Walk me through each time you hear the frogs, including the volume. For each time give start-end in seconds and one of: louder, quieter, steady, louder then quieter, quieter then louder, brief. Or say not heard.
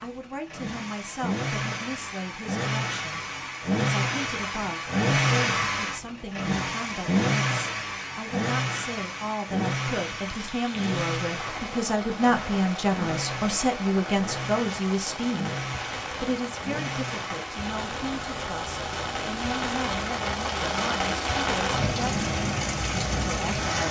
not heard.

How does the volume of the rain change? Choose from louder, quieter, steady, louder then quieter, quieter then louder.
louder.